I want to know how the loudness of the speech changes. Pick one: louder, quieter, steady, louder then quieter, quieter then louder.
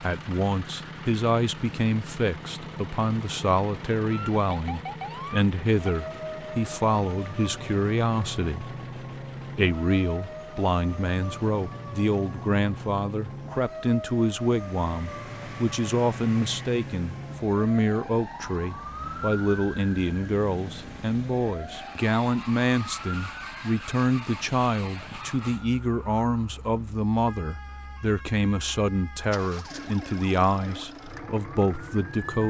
steady.